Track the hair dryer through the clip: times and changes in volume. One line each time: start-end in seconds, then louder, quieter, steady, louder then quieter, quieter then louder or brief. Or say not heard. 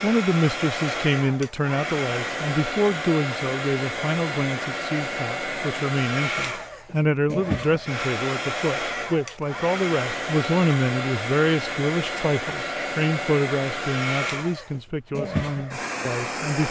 0.0-16.6 steady.